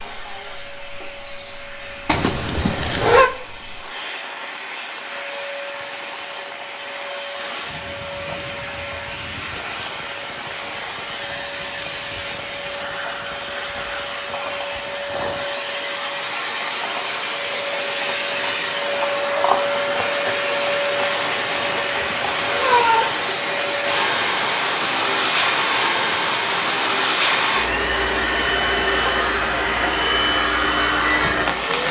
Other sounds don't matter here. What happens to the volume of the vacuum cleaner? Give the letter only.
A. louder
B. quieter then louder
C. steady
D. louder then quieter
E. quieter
A.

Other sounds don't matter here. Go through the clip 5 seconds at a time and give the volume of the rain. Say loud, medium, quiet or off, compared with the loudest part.
quiet, medium, medium, medium, loud, loud, loud.